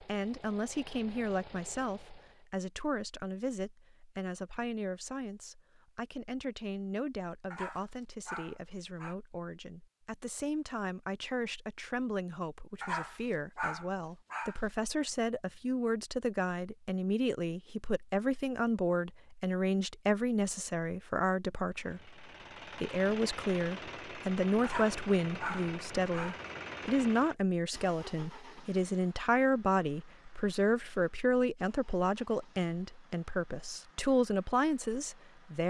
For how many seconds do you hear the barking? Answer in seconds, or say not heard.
5 s.